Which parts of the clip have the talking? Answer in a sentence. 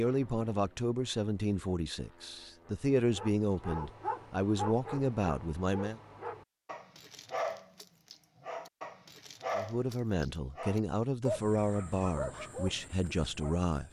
You can hear the talking from 0.0 to 6.0 s and from 9.6 to 13.8 s.